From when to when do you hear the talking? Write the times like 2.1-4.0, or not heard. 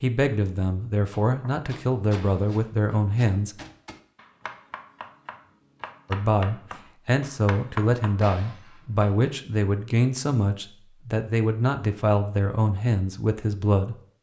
0.0-3.5, 6.1-13.9.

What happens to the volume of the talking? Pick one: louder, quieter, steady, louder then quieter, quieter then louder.
steady.